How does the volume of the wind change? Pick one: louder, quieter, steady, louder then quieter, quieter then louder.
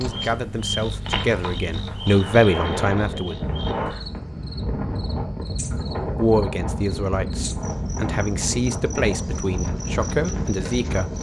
louder.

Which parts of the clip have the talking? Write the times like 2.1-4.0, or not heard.
0.0-3.4, 6.2-11.1.